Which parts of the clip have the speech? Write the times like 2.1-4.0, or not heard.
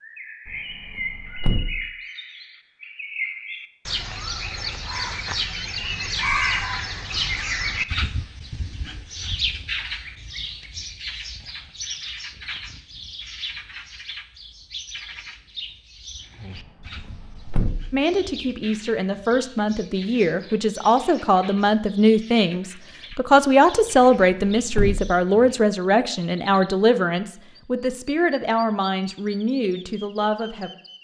17.9-30.7.